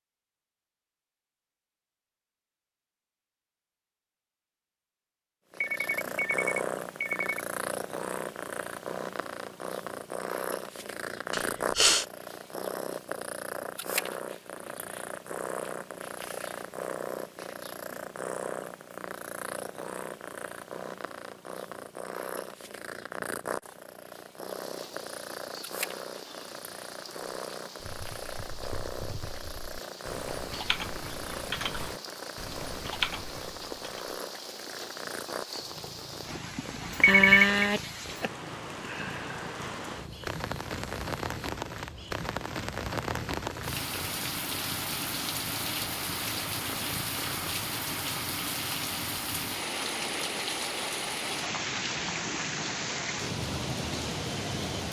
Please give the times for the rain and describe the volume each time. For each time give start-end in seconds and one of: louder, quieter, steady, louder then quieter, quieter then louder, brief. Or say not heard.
24.4-54.8 louder.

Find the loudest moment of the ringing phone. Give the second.
37 s.